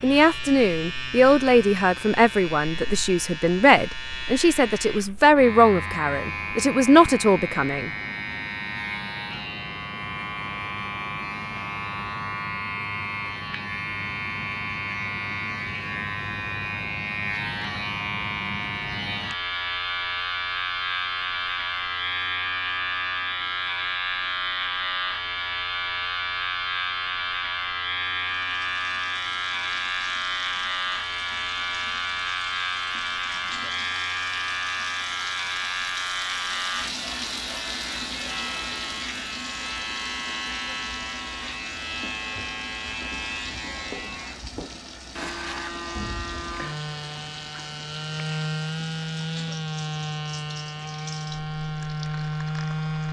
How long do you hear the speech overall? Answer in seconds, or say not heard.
8 s.